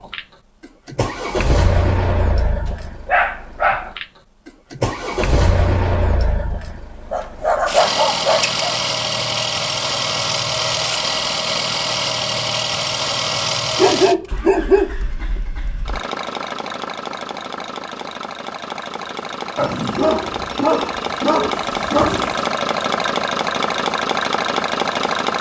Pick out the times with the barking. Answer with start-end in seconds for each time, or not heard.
3.0-3.9, 7.1-8.7, 13.8-15.4, 19.6-22.4.